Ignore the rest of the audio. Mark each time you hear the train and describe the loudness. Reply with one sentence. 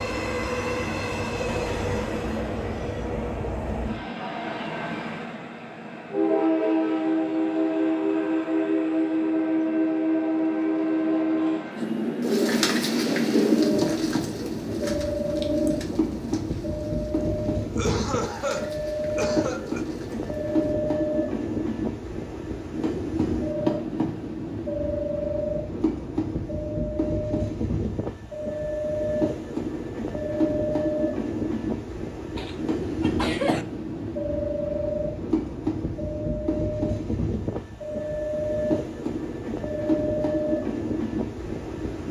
The train can be heard from 0.0 to 42.0 s, at a steady volume.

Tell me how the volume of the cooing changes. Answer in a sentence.
The volume of the cooing goes down.